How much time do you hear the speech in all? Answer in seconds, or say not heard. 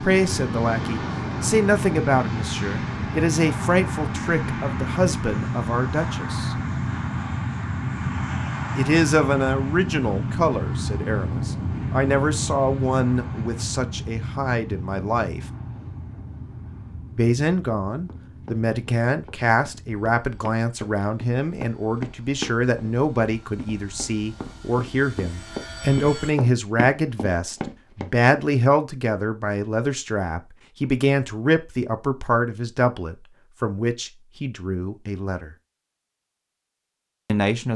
32 s.